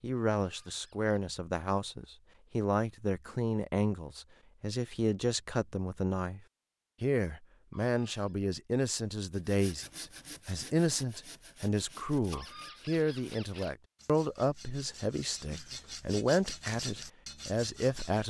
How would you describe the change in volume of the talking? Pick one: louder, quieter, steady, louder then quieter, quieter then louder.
steady.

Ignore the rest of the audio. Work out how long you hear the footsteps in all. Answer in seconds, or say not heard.
not heard.